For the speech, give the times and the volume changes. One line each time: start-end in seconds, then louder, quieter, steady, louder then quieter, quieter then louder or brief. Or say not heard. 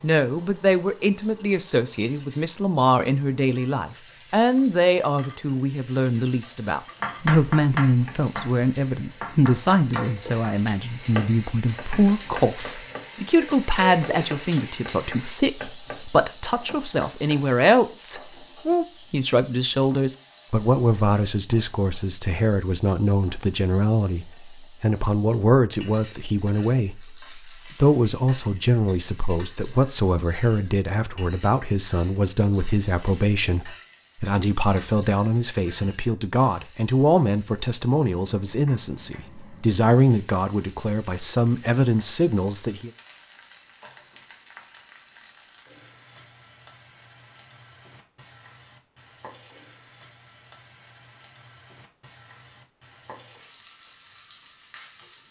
0.0-42.9 steady.